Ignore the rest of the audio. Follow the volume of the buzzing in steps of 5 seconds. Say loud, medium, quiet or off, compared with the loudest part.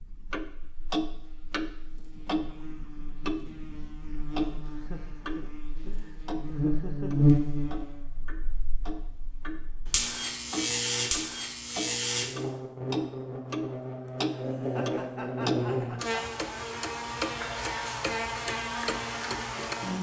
quiet, loud, loud, loud.